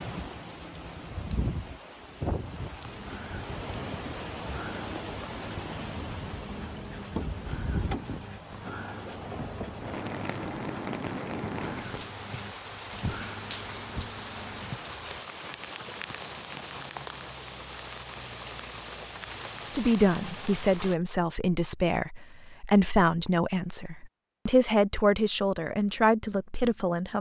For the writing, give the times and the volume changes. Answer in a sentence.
The writing can be heard from 2.9 to 14.8 s, at a steady volume.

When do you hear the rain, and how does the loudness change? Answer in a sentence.
The rain can be heard from 0.0 to 20.9 s, at a steady volume.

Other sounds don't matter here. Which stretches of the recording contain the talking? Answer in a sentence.
The talking can be heard from 19.6 to 27.1 s.